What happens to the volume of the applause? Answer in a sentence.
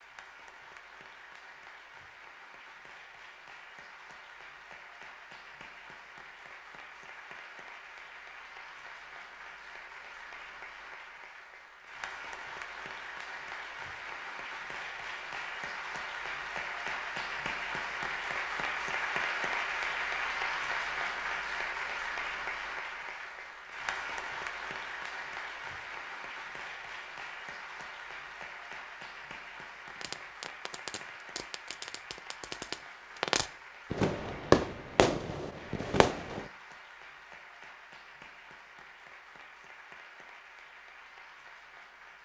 The volume of the applause goes up, then down.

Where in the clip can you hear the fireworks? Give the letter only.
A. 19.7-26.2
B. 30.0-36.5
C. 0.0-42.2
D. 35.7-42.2
B.